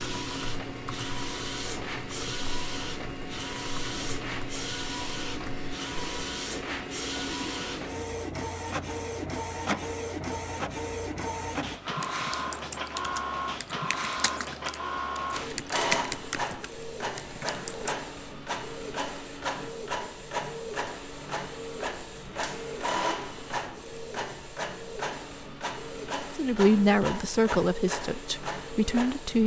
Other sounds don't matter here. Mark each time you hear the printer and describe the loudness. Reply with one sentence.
You can hear the printer from 0.0 to 29.4 s, at a steady volume.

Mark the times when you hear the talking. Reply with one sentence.
The talking can be heard from 26.4 to 29.4 s.